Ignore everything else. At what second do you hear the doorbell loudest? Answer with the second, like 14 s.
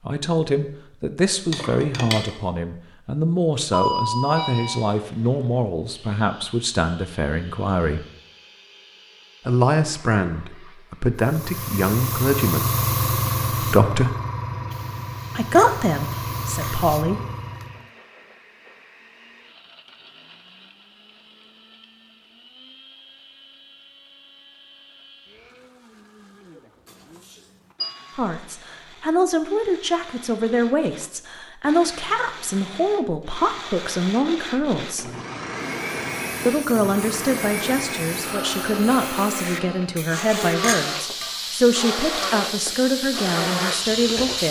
4 s.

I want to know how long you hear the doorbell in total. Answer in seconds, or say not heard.
3 s.